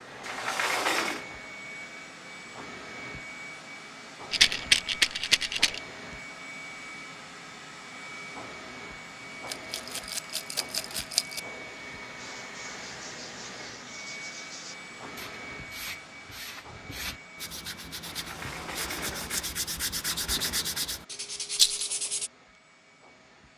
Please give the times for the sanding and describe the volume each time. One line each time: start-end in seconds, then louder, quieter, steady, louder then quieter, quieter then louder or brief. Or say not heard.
12.2-22.3 louder.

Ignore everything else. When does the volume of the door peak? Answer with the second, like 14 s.
1 s.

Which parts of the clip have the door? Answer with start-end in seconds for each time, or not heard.
0.2-1.2, 18.1-20.6.